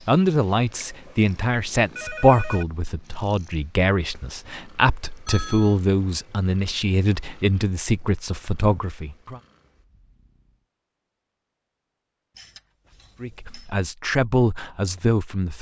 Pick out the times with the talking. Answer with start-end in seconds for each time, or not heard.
0.1-9.4, 13.2-15.5.